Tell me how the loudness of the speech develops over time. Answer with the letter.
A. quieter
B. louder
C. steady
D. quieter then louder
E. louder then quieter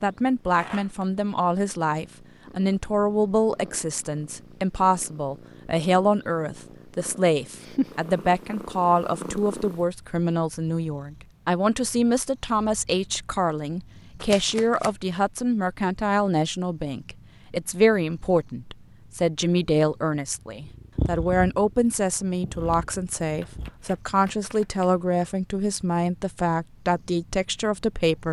C.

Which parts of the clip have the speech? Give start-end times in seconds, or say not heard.
0.0-28.2.